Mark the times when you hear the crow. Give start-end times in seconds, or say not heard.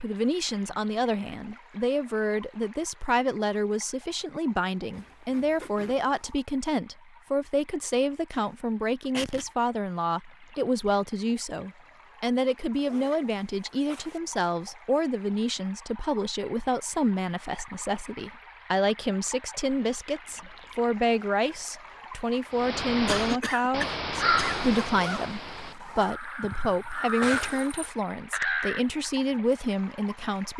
22.5-29.1.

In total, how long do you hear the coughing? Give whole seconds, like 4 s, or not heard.
3 s.